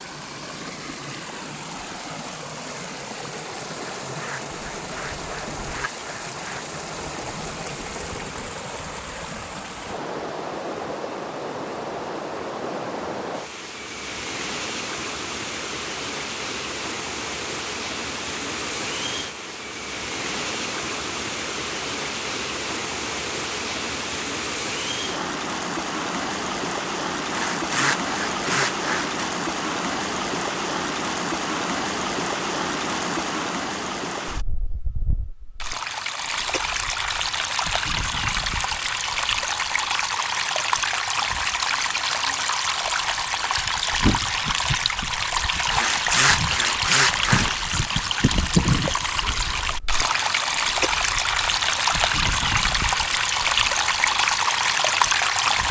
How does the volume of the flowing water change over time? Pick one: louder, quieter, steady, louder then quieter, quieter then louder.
louder.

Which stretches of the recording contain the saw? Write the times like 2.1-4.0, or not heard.
4.0-6.7, 27.3-29.2, 45.7-47.6.